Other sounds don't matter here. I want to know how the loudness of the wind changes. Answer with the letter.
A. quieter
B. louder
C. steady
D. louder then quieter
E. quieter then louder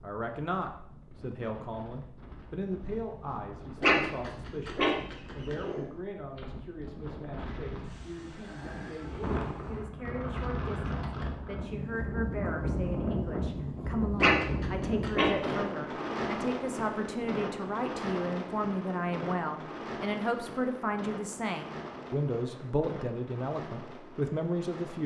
D.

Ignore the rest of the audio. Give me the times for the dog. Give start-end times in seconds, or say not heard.
3.8-5.8, 14.2-15.6.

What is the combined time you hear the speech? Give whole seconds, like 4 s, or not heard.
25 s.